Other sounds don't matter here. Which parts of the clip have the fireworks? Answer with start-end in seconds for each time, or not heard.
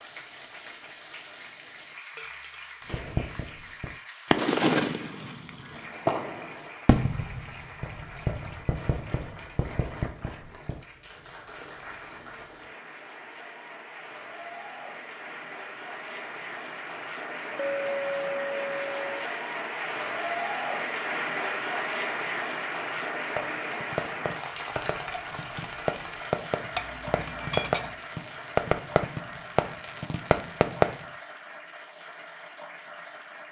2.9-10.8, 22.9-31.1.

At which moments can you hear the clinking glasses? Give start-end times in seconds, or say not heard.
2.1-3.2, 17.6-19.1, 26.8-27.9.